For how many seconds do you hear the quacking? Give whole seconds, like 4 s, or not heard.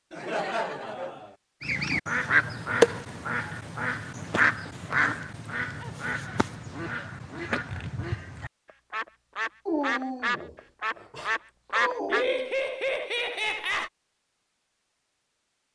11 s.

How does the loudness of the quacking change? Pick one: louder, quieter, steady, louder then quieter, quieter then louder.
quieter then louder.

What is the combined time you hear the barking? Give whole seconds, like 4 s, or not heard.
3 s.